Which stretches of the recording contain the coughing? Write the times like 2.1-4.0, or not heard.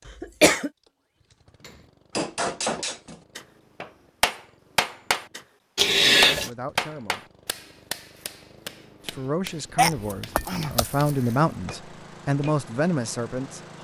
0.1-0.7, 5.8-6.5, 9.8-11.3.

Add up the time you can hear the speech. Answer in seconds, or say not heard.
6 s.